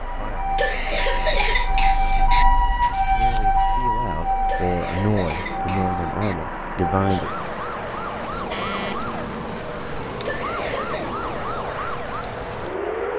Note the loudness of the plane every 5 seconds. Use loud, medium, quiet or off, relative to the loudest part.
medium, loud, loud.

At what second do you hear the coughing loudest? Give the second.
1 s.